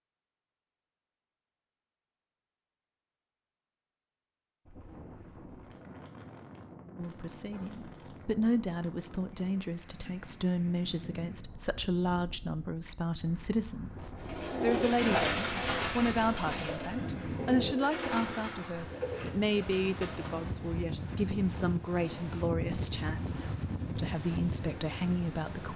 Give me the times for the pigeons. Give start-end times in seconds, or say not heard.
14.2-20.6.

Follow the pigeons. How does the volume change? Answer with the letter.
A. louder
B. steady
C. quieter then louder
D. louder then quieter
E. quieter
E.